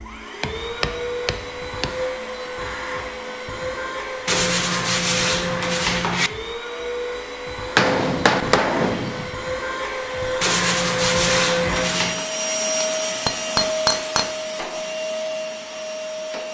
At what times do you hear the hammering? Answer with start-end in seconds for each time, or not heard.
0.4-2.0, 7.8-9.3, 12.8-14.3.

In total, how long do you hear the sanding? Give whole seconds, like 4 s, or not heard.
4 s.